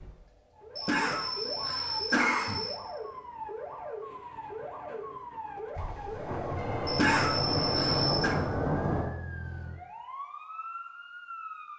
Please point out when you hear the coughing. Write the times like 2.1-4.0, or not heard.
0.8-2.8, 6.8-8.3.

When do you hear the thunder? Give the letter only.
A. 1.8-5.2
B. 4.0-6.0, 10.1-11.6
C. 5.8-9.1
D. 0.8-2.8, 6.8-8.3
C.